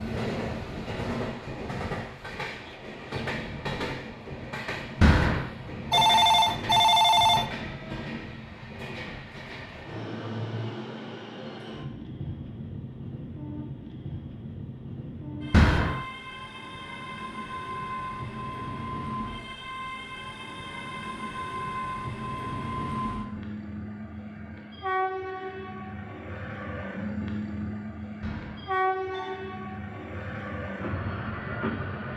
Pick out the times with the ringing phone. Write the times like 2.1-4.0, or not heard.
5.0-7.5, 15.5-16.1, 28.2-29.4.